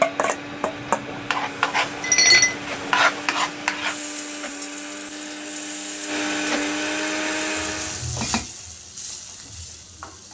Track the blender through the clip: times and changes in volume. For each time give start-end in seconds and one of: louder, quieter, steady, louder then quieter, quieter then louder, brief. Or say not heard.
0.0-8.1 louder.